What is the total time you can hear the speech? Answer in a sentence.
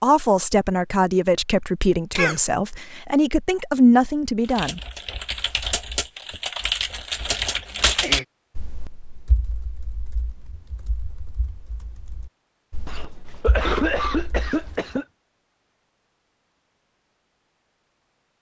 You can hear the speech for 5 seconds altogether.